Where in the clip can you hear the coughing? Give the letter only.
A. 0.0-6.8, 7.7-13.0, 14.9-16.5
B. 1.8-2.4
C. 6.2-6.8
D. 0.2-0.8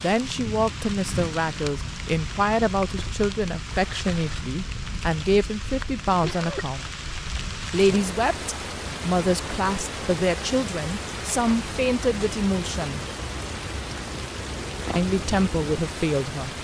C.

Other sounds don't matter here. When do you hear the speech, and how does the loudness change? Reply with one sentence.
You can hear the speech from 0.0 to 6.8 s, at a steady volume; from 7.7 to 13.0 s, at a steady volume; and briefly from 14.9 to 16.5 s.